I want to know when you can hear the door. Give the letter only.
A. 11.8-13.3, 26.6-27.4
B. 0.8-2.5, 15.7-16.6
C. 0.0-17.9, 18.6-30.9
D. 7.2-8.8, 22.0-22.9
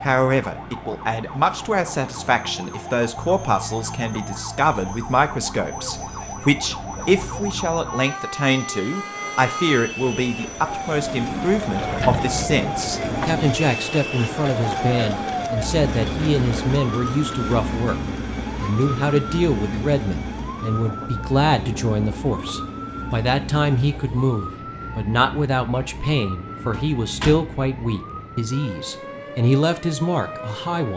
A.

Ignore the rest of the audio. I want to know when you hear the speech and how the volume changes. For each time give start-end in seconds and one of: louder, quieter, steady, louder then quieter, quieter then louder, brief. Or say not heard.
0.0-17.9 steady
18.6-30.9 steady.